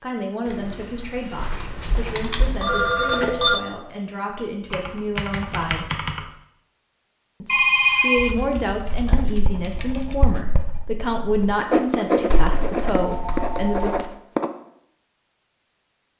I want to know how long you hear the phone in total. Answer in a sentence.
You can hear the phone for 4 seconds altogether.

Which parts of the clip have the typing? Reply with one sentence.
You can hear the typing from 0.5 to 2.5 s, from 4.7 to 6.3 s, from 8.2 to 10.2 s and from 12.3 to 14.1 s.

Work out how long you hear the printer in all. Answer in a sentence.
You can't hear the printer here.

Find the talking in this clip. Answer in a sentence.
You can hear the talking from 0.0 to 5.9 s and from 7.4 to 13.9 s.